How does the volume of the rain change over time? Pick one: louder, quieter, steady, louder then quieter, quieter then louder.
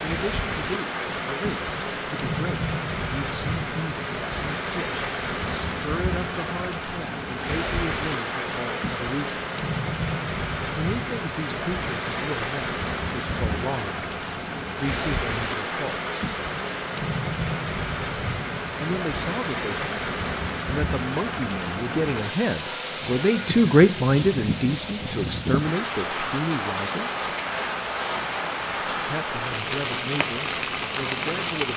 steady.